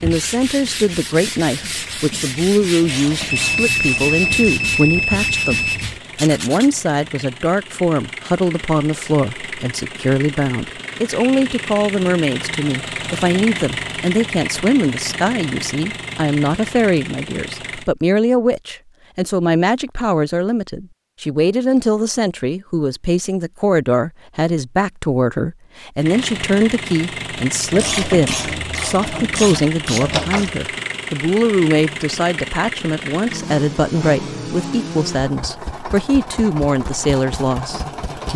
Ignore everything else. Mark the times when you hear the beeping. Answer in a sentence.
The beeping can be heard from 3.3 to 5.8 s.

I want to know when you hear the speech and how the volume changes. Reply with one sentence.
The speech can be heard from 0.0 to 38.3 s, at a steady volume.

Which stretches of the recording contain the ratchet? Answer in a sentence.
You can hear the ratchet from 2.8 to 4.3 s and from 27.7 to 30.6 s.